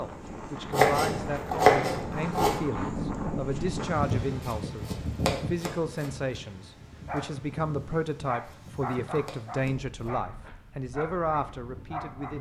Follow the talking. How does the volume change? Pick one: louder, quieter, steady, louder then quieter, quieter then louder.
steady.